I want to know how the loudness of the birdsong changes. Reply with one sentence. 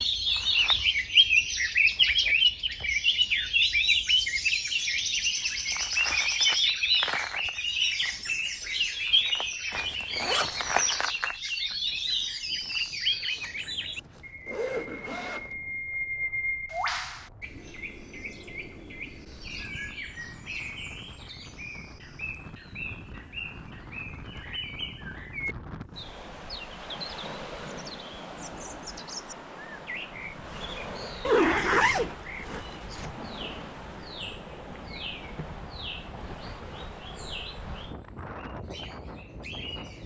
The loudness of the birdsong goes down.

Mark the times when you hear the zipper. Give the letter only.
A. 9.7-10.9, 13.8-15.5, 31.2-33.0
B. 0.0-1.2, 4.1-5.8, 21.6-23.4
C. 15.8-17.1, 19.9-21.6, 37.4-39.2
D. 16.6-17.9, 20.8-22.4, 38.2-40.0
A.